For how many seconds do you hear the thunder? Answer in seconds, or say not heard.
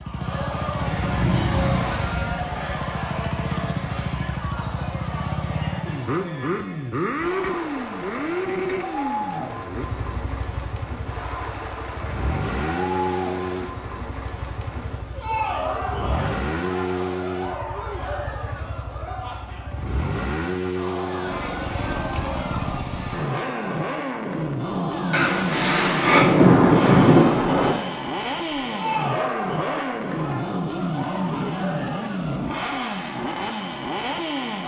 4 s.